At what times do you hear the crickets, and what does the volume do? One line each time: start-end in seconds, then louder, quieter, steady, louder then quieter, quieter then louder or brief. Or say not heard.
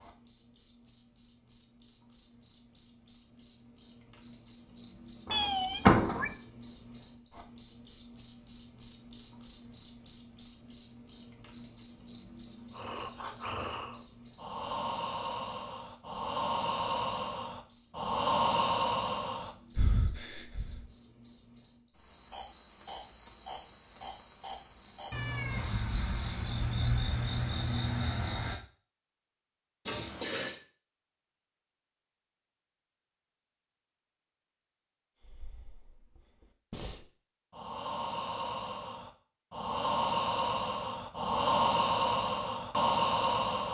0.0-28.6 louder then quieter.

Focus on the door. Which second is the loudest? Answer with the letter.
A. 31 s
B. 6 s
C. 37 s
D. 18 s
B.